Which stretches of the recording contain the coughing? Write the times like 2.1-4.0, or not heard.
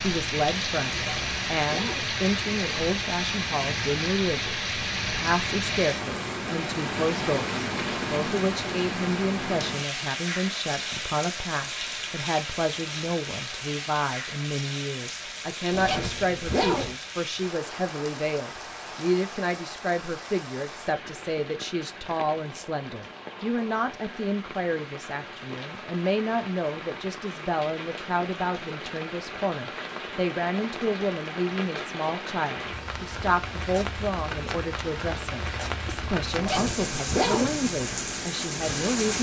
not heard.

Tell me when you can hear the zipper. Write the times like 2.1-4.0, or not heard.
0.9-2.1, 15.7-16.9, 36.3-37.5.